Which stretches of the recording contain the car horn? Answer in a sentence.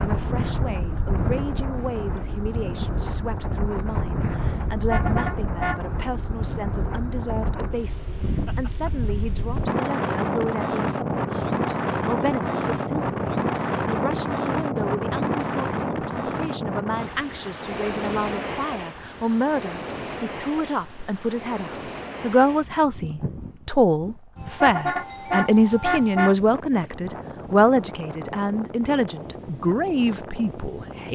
The car horn can be heard from 4.8 to 5.8 s and from 24.5 to 26.4 s.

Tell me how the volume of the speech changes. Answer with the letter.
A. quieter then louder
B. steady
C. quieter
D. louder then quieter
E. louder
E.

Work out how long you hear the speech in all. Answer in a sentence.
The speech can be heard for 31 seconds in total.